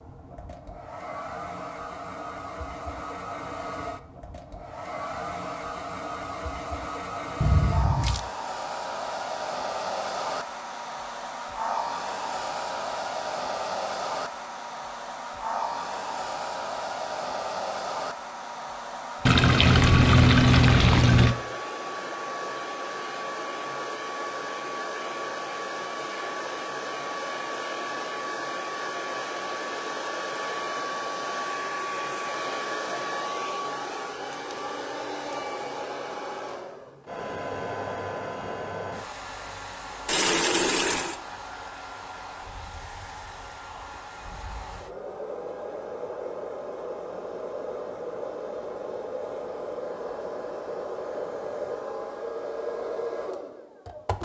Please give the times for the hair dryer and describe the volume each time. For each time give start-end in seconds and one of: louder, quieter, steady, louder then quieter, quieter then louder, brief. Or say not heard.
0.0-54.1 steady.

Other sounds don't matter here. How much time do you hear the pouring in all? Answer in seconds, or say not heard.
4 s.